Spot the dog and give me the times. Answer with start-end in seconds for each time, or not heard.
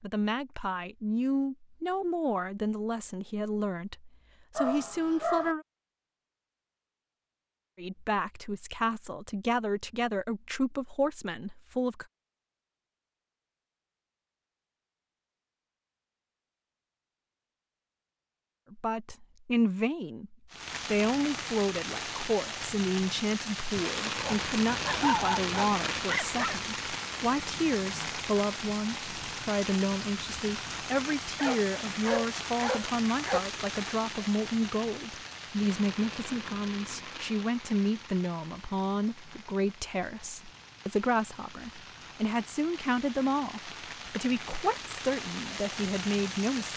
4.5-5.5, 24.1-26.6, 31.4-33.4.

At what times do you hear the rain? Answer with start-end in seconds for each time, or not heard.
20.5-46.7.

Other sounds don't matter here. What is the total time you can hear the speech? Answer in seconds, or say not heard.
38 s.